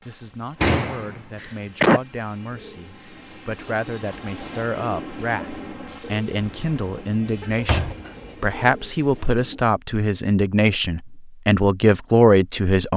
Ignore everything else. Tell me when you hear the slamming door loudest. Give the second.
1 s.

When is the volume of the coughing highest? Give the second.
2 s.